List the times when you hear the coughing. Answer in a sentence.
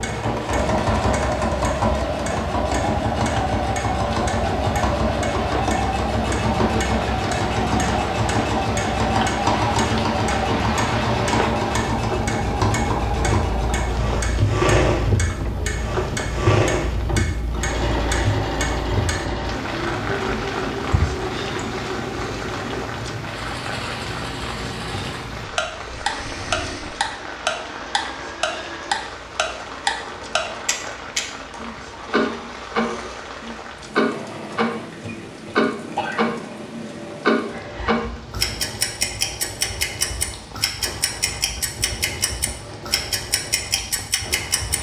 You can hear the coughing from 35.0 to 36.2 s.